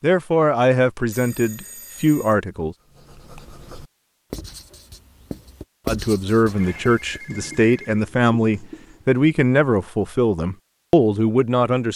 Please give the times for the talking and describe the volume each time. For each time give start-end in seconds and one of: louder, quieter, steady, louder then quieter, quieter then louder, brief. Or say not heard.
0.0-2.8 brief
5.8-11.9 steady.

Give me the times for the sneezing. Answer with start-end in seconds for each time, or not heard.
not heard.